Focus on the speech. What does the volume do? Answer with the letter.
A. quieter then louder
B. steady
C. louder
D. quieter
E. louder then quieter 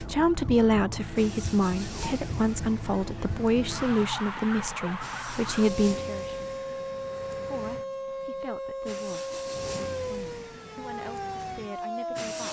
D.